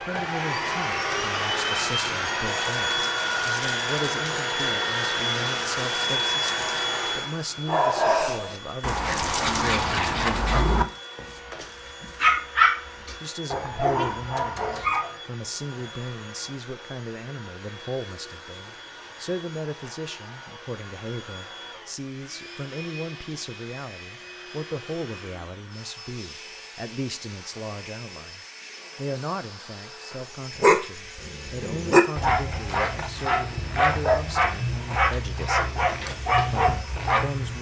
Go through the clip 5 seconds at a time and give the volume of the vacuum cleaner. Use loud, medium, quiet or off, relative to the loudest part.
loud, loud, quiet, quiet, quiet, quiet, quiet, quiet.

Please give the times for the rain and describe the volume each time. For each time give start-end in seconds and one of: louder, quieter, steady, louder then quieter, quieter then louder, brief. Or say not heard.
not heard.